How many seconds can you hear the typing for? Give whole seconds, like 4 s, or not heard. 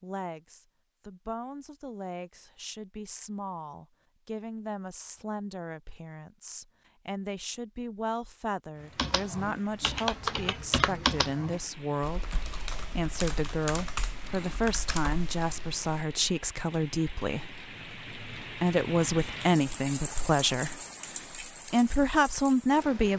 7 s.